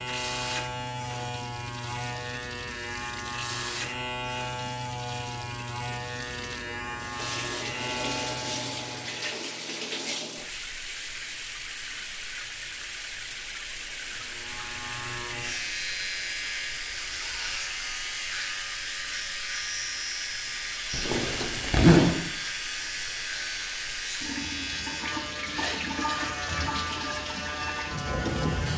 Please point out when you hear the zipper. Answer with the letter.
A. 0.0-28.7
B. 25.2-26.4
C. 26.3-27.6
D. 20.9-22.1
D.